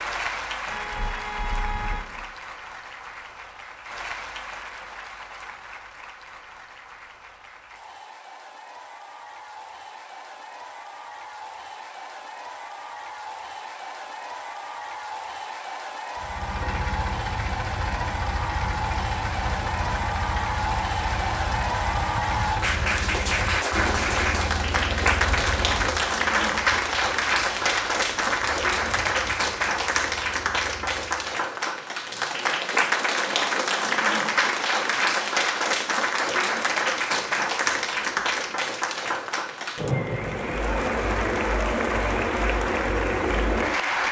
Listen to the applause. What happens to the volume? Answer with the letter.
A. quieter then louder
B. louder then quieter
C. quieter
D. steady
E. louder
E.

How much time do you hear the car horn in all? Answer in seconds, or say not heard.
2 s.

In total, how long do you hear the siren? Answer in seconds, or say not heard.
not heard.